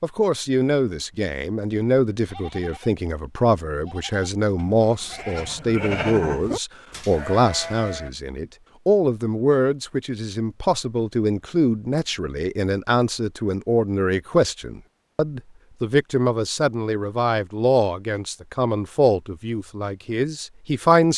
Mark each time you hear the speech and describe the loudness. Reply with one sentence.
You can hear the speech from 0.0 to 21.1 s, at a steady volume.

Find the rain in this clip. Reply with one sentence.
The rain can't be heard in this clip.